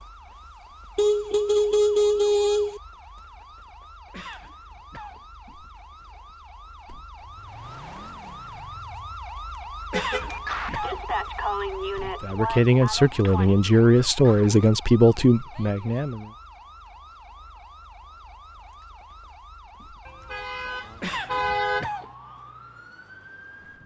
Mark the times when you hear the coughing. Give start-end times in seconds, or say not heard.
4.1-5.2, 9.9-11.1, 21.0-22.1.